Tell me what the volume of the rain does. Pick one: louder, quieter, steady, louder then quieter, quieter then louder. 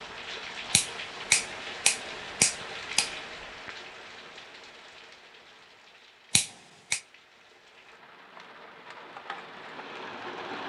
quieter then louder.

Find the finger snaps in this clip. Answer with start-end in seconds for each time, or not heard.
0.7-3.1, 6.3-7.0.